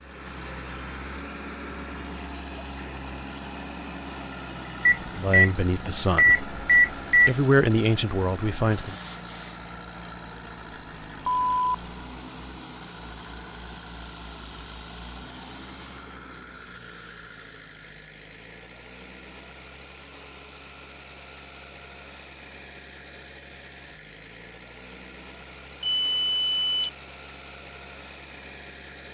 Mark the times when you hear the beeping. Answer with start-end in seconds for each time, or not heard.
4.8-7.3, 11.2-11.7, 25.8-26.9.